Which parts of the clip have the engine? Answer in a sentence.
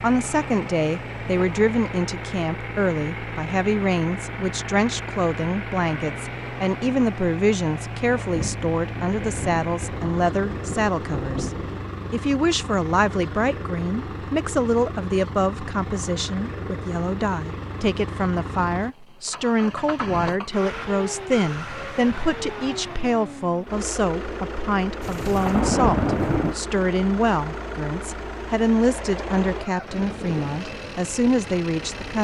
You can hear the engine from 0.0 to 32.1 s.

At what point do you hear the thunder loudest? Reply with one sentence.
The loudest moment of the thunder is at 26 seconds.